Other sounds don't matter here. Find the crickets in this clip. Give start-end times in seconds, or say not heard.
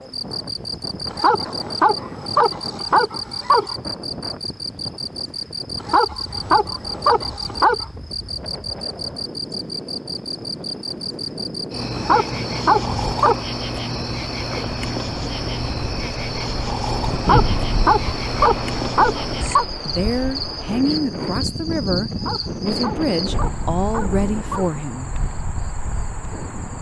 0.0-26.7.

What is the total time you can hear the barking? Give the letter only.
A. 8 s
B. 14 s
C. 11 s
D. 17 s
C.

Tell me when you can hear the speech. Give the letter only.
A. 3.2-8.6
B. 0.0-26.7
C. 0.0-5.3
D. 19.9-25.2
D.